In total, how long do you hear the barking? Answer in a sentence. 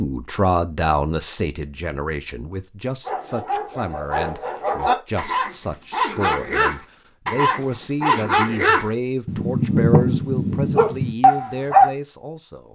You can hear the barking for 9 seconds altogether.